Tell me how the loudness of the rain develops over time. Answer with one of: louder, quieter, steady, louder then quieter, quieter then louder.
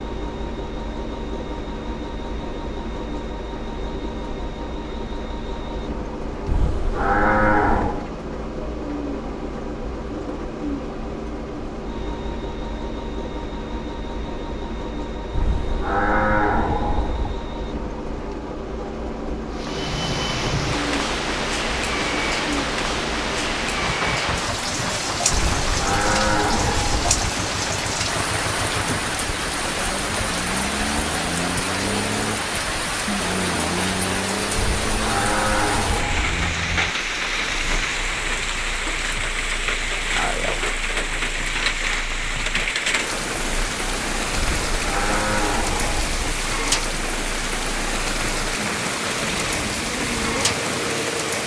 steady.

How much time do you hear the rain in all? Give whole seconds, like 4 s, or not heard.
32 s.